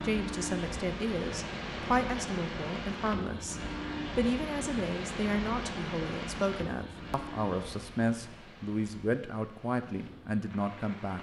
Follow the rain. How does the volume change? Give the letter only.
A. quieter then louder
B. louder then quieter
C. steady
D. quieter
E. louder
D.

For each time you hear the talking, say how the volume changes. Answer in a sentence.
The talking can be heard from 0.0 to 11.1 s, at a steady volume.